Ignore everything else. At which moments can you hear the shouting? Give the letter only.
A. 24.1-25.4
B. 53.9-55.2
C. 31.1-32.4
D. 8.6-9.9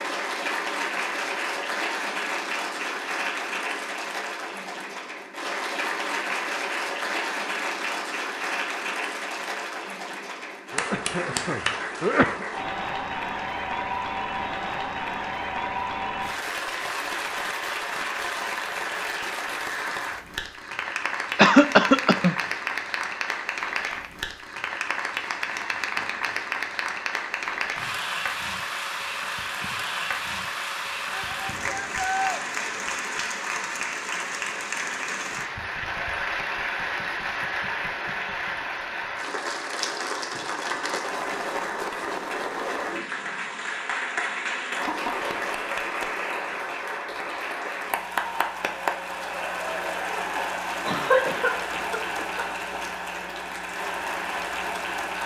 C.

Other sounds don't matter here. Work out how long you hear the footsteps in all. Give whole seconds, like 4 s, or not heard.
not heard.